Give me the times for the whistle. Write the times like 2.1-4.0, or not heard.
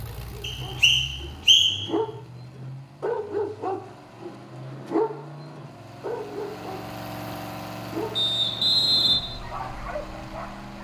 0.4-1.9, 8.2-9.2.